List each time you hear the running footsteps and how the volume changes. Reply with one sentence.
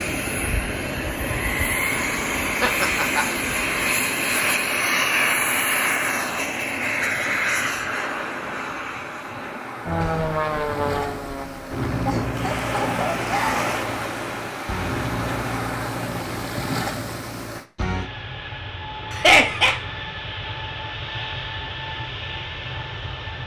The running footsteps can't be heard in this clip.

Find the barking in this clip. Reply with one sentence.
The barking can't be heard in this clip.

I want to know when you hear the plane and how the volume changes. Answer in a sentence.
The plane can be heard from 0.0 to 23.4 s, getting quieter.